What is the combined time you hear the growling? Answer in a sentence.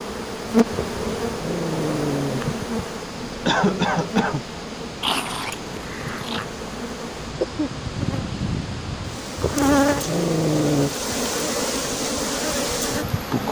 The growling can be heard for 5 seconds in total.